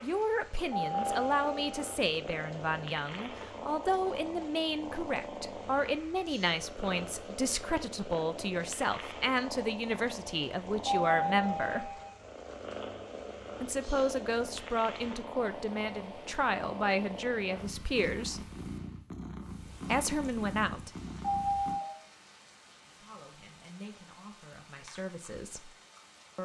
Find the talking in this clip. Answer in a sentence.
You can hear the talking from 0.0 to 11.9 s, from 13.6 to 18.4 s, from 19.9 to 20.9 s and from 23.0 to 25.8 s.